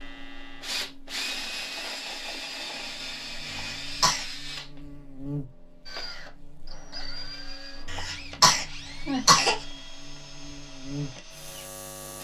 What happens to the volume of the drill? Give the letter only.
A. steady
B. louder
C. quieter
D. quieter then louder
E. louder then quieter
C.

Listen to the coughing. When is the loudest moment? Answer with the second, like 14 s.
9 s.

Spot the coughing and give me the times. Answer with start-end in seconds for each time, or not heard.
3.5-4.2, 7.8-9.7.